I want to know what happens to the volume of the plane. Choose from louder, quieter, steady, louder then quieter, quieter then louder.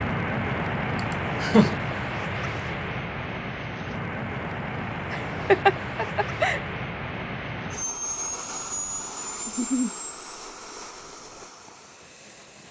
quieter.